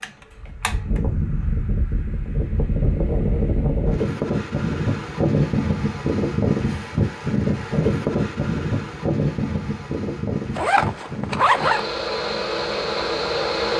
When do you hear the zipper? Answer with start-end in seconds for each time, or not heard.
10.6-11.8.